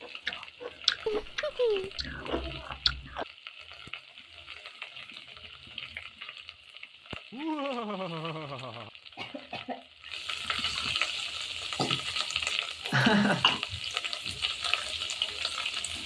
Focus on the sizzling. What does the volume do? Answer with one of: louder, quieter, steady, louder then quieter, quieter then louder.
louder.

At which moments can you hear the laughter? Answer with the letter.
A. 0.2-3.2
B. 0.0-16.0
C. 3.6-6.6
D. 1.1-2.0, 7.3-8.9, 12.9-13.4
D.